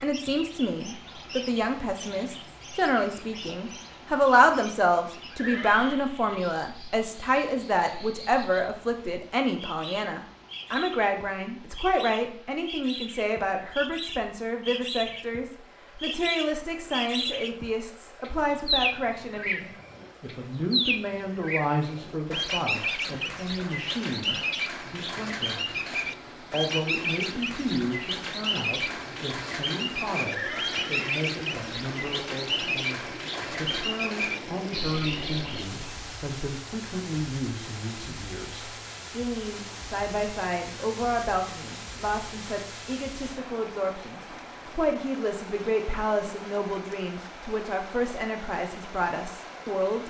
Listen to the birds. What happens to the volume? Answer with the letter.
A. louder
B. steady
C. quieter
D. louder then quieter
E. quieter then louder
A.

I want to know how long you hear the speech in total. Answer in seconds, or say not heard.
50 s.